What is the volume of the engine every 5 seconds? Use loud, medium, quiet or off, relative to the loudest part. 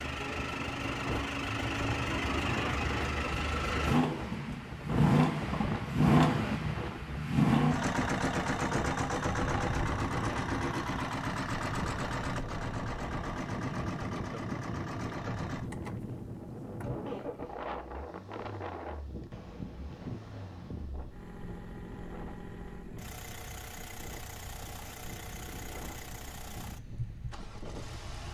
medium, loud, medium, quiet, quiet, quiet.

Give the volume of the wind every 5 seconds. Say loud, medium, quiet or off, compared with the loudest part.
loud, loud, loud, loud, medium, medium.